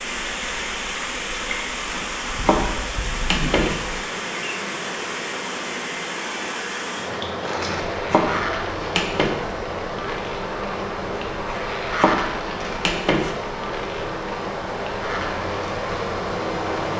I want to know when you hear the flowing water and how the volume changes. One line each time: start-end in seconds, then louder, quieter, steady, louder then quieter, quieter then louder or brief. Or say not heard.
0.0-16.9 steady.